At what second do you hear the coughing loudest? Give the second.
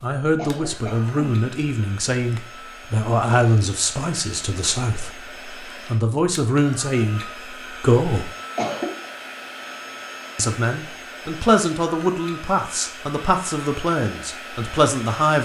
9 s.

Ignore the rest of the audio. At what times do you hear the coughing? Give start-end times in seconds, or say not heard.
0.3-1.4, 8.6-9.1.